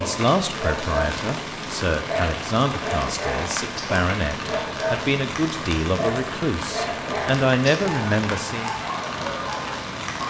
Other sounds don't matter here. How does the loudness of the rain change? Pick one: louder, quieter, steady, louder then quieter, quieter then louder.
steady.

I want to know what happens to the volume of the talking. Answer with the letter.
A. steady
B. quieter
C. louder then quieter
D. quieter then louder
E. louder
E.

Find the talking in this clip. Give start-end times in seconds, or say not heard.
0.1-8.8.